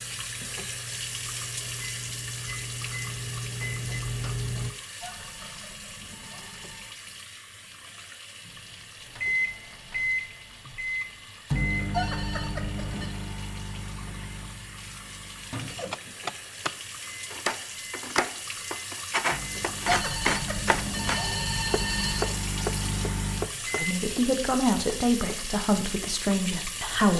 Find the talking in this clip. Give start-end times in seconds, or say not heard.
23.8-27.1.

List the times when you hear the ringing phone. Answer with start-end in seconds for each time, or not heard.
5.0-6.8, 11.9-13.1, 19.9-22.4.